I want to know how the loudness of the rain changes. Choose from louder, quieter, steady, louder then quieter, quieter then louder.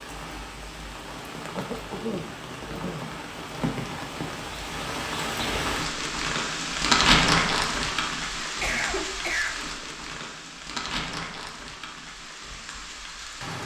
louder then quieter.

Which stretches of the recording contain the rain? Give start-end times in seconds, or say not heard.
0.0-13.6.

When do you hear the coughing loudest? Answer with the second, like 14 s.
9 s.